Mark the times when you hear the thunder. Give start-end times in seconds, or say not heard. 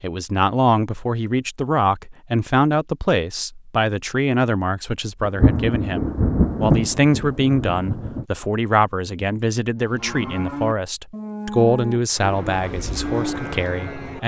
5.2-8.2.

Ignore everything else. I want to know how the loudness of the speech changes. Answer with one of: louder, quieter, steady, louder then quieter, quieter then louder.
steady.